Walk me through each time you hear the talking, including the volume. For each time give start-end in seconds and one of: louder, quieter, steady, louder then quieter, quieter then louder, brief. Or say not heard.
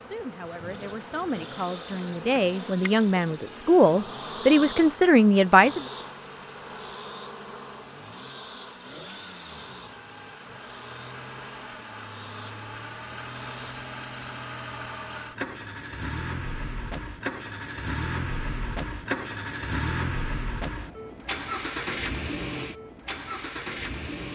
0.0-5.8 louder.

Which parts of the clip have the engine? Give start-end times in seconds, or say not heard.
0.0-24.3.